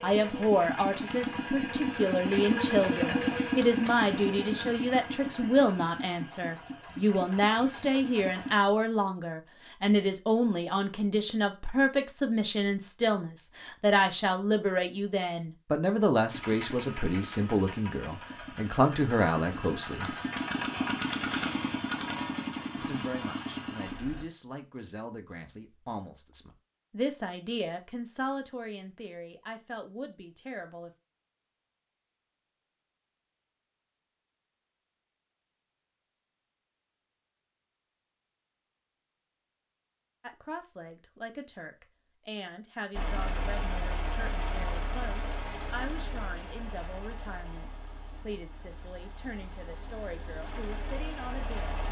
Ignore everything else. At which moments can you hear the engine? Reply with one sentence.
The engine can be heard from 0.0 to 8.6 s, from 16.3 to 24.2 s and from 42.9 to 51.8 s.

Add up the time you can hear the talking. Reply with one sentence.
You can hear the talking for 40 seconds altogether.